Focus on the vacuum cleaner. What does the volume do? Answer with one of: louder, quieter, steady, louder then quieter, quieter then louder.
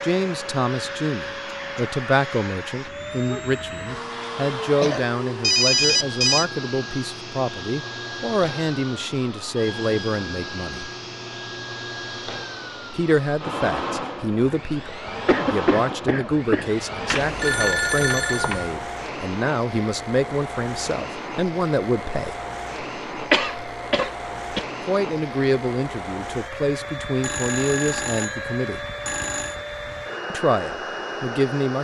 steady.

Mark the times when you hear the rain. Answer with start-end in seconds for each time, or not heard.
not heard.